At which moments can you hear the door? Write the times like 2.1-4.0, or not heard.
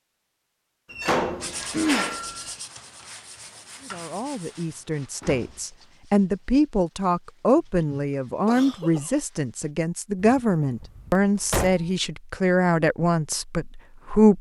0.9-2.5, 5.2-5.7, 10.2-11.9.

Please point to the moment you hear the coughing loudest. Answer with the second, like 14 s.
2 s.